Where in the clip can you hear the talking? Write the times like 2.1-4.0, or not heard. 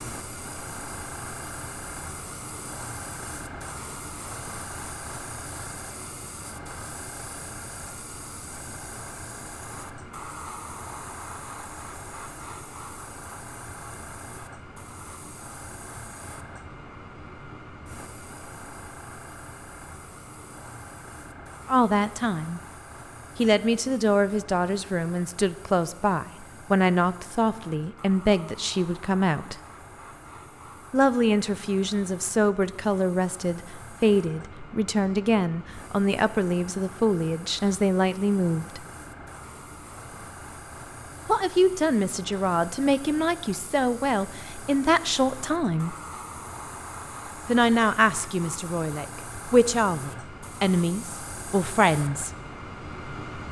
21.6-22.6, 23.4-29.6, 30.9-38.9, 41.2-46.0, 47.5-52.3.